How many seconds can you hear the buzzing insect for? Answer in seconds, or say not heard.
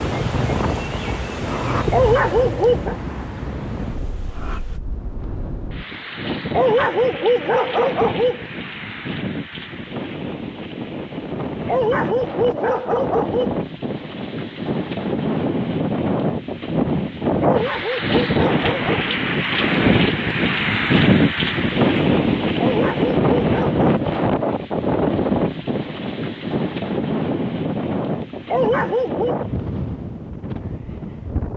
5 s.